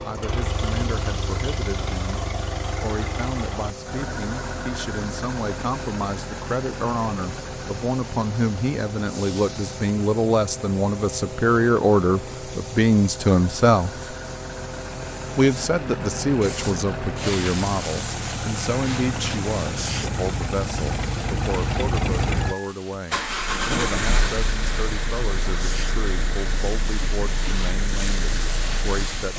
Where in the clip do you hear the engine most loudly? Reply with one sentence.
The volume of the engine peaks at 24 seconds.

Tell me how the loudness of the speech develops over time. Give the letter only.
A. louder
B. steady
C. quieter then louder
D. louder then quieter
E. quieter
D.